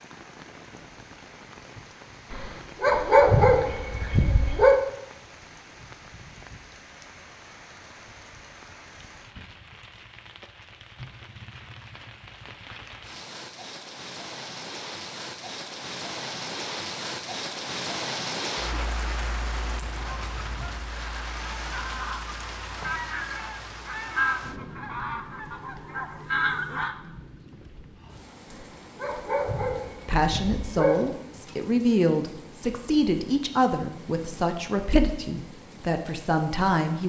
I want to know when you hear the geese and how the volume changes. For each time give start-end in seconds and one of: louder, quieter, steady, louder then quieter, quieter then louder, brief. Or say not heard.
19.8-26.9 louder.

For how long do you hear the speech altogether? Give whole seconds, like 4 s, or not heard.
7 s.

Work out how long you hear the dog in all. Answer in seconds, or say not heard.
5 s.